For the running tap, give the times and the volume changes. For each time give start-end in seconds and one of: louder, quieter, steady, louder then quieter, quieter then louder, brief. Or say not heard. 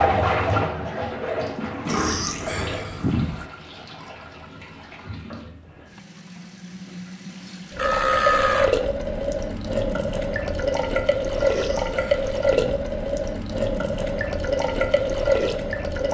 0.0-16.0 quieter then louder.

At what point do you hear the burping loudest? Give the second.
8 s.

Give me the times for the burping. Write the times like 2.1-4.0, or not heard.
1.9-3.5, 7.8-8.7, 11.3-12.9.